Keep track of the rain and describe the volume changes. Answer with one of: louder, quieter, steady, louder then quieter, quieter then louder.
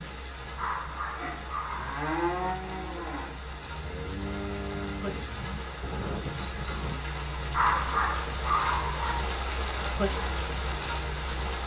louder.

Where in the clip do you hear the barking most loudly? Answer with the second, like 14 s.
8 s.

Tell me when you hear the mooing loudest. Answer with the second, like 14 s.
2 s.